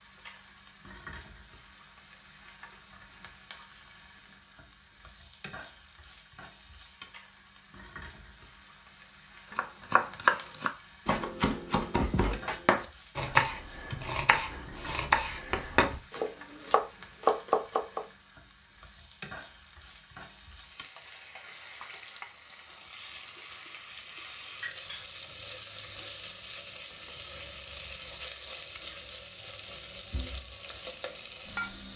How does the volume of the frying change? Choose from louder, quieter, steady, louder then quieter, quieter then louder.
louder.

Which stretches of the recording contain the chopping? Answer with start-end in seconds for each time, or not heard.
9.6-18.1.